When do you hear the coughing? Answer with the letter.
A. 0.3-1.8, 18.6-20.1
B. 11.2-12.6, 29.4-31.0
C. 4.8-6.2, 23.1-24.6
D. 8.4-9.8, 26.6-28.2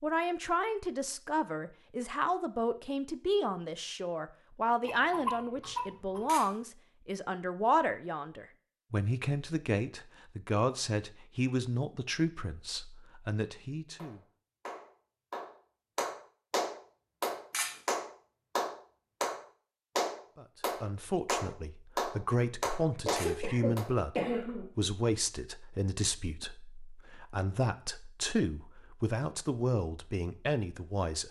C.